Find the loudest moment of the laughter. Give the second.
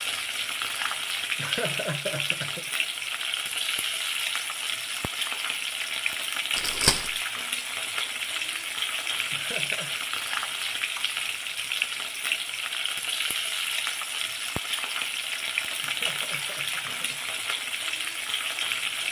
2 s.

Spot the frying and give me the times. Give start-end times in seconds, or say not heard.
0.0-19.0.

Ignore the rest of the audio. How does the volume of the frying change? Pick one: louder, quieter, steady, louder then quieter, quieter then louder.
steady.